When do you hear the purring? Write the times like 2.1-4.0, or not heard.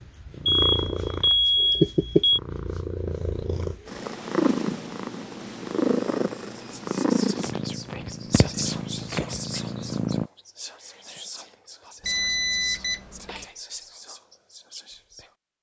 0.0-10.3.